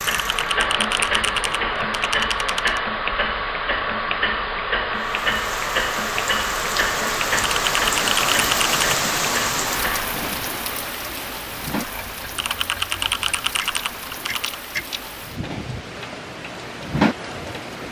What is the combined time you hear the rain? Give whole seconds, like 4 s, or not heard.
13 s.